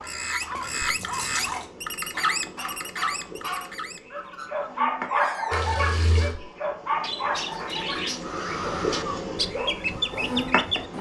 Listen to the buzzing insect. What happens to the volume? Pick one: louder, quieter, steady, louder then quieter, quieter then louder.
louder.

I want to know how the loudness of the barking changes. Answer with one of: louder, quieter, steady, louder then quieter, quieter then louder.
louder then quieter.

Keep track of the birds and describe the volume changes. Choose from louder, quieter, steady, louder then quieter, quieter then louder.
quieter then louder.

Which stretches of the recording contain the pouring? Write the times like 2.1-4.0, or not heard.
0.6-1.6, 5.5-6.3.